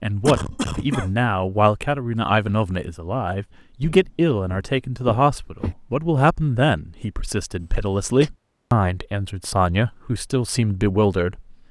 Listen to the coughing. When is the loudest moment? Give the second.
1 s.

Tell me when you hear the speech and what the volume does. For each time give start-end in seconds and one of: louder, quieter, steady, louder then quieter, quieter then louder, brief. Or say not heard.
0.0-11.6 steady.